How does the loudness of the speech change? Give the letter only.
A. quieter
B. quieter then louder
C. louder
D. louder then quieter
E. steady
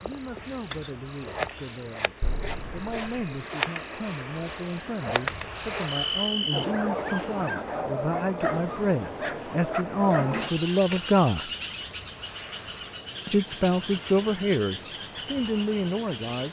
C.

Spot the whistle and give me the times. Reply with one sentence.
The whistle can't be heard in this clip.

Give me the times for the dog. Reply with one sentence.
The dog can be heard from 6.5 to 10.3 s.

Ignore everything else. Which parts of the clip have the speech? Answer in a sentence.
You can hear the speech from 0.0 to 11.5 s and from 13.2 to 16.4 s.